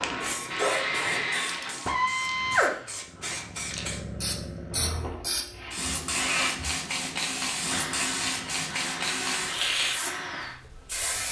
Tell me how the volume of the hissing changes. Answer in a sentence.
The volume of the hissing goes up.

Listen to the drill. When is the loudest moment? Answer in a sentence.
The loudest moment of the drill is at 2 seconds.